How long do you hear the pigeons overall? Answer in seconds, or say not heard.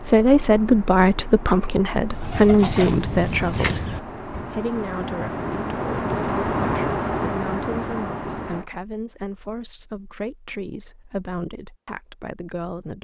2 s.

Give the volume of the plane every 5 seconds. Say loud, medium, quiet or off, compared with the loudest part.
medium, loud, off.